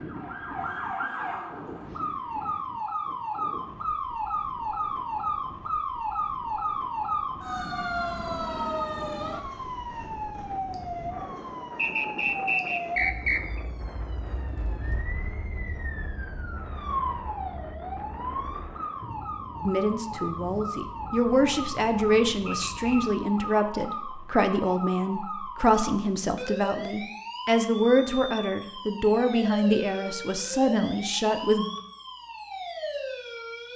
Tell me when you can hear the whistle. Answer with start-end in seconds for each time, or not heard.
11.8-13.6, 22.4-23.2.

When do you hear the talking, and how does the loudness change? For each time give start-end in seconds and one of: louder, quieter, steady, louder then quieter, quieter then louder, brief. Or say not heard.
19.6-31.7 steady.